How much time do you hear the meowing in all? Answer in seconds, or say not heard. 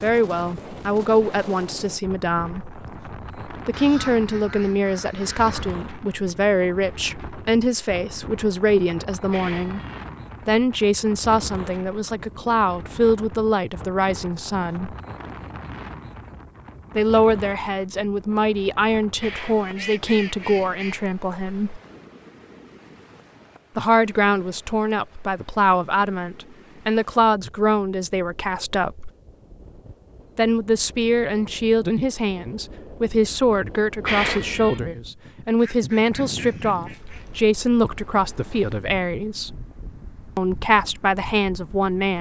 2 s.